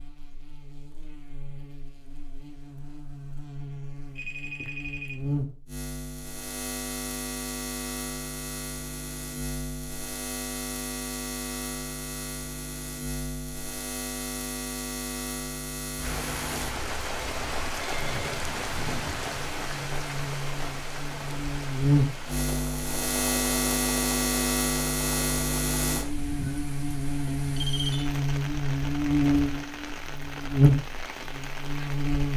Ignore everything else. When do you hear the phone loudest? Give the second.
28 s.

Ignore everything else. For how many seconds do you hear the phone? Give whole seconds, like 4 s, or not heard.
3 s.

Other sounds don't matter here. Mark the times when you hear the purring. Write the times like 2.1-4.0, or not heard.
not heard.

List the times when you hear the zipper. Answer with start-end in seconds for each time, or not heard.
not heard.